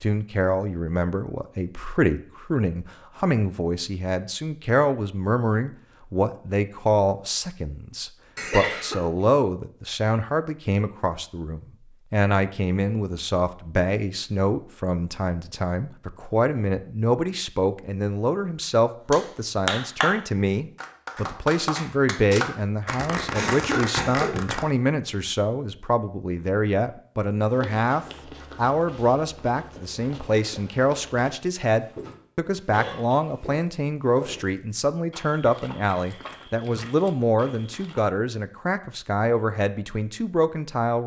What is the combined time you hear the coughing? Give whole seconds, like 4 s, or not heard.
2 s.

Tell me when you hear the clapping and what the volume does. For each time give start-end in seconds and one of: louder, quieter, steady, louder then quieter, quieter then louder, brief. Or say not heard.
19.1-24.6 quieter then louder.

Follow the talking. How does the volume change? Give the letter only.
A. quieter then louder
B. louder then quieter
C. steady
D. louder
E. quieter
C.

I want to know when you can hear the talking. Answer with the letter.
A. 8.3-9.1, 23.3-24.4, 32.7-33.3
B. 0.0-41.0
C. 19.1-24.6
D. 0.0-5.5
B.